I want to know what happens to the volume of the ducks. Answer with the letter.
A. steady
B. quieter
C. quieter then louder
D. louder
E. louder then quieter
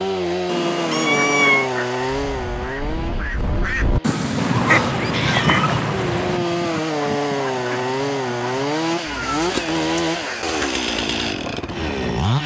E.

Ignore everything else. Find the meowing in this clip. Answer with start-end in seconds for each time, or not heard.
0.5-1.7, 4.3-6.4, 9.1-10.1.